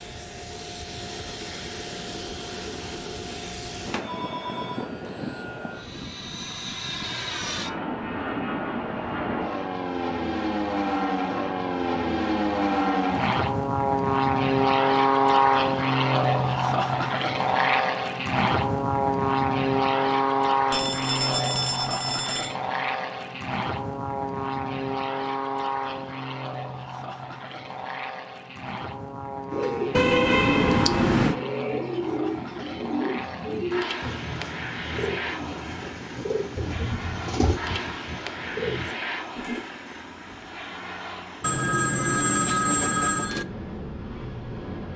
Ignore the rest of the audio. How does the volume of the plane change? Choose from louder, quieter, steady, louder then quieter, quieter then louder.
louder then quieter.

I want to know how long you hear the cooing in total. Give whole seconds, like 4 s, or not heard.
10 s.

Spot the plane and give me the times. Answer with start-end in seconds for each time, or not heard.
0.0-44.9.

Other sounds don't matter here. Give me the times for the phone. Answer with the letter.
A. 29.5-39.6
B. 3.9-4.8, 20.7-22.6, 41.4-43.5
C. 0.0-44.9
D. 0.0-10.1
B.